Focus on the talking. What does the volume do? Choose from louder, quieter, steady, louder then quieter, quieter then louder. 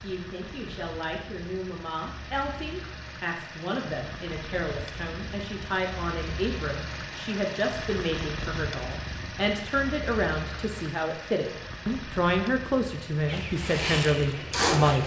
louder.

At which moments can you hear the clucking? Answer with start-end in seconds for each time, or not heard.
13.2-15.0.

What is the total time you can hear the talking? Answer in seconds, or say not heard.
15 s.